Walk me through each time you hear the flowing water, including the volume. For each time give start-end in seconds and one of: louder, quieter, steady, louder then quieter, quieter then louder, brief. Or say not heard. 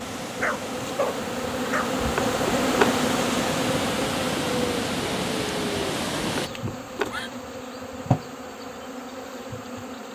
0.0-6.5 louder.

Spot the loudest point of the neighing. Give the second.
3 s.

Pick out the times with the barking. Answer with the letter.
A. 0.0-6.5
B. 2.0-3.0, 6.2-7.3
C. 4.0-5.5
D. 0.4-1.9
D.